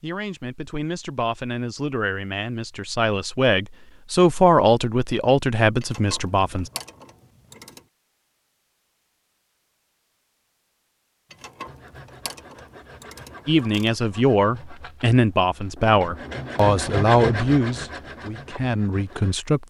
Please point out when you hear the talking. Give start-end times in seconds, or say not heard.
0.0-6.7, 13.4-19.6.